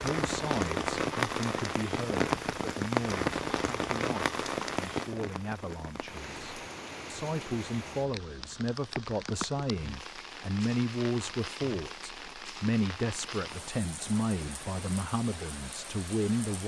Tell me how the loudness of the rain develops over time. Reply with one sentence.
The volume of the rain goes down.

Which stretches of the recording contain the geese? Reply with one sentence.
The geese can't be heard in this clip.